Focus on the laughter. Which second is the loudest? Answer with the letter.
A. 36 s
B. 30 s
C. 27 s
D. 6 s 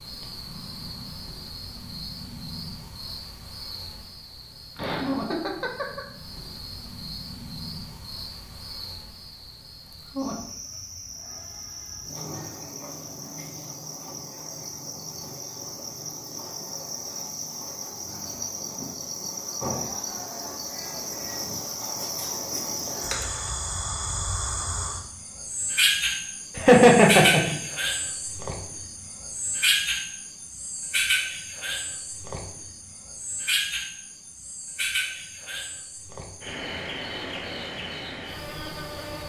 C.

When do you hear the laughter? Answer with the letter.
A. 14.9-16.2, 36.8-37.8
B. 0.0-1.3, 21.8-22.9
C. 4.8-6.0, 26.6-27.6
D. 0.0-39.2
C.